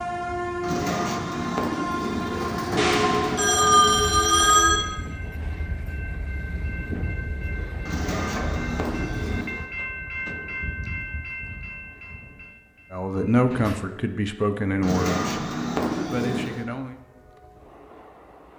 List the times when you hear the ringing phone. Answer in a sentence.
The ringing phone can be heard from 2.8 to 4.8 s.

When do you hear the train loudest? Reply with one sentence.
The volume of the train peaks at 3 seconds.